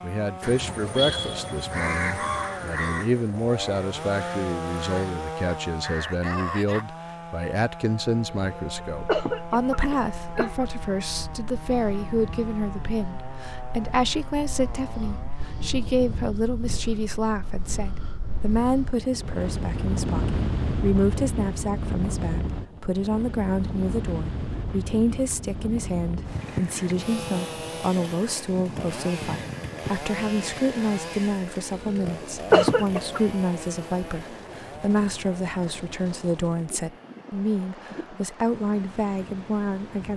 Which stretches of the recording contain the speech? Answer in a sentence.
You can hear the speech from 0.0 to 40.1 s.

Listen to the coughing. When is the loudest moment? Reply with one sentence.
The volume of the coughing peaks at 33 seconds.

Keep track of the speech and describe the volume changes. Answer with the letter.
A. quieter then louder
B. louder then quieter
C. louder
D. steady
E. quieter
D.